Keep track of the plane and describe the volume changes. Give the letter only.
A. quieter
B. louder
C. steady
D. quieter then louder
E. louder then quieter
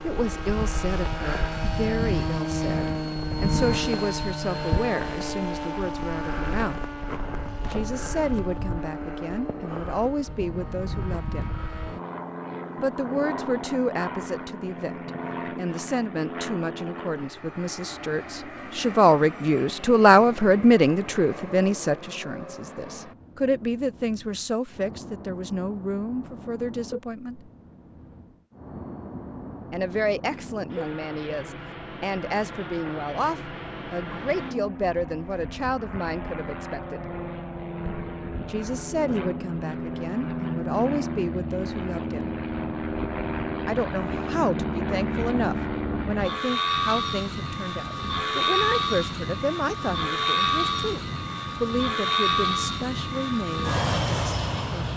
D.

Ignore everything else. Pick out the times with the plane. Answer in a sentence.
You can hear the plane from 0.0 to 54.9 s.